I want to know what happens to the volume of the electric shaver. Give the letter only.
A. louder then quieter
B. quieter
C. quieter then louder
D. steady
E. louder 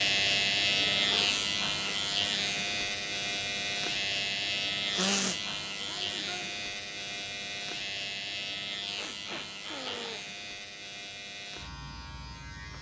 B.